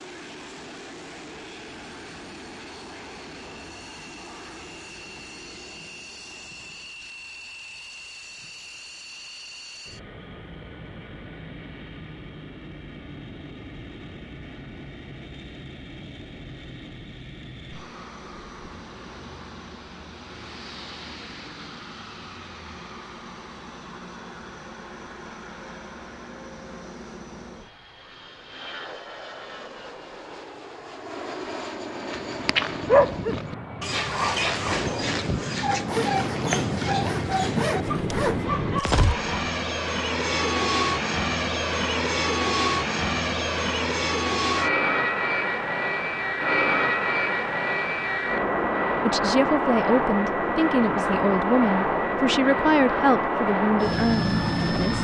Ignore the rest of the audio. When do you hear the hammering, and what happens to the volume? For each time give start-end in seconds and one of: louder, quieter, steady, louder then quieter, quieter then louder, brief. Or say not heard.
not heard.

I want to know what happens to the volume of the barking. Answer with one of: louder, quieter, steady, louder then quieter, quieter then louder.
quieter.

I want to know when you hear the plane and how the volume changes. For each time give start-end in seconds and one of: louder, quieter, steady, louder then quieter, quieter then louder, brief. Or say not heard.
0.0-54.9 louder.